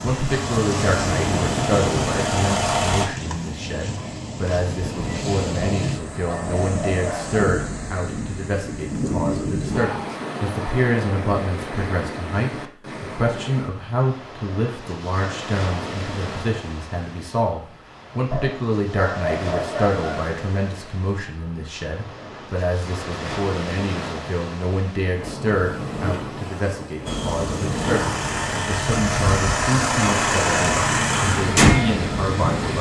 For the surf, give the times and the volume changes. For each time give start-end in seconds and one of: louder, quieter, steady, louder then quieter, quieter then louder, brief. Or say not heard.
0.0-32.7 quieter then louder.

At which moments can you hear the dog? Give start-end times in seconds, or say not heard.
5.6-7.5, 18.3-20.3.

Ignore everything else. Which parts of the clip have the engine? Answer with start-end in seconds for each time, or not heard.
0.0-3.0, 27.1-32.7.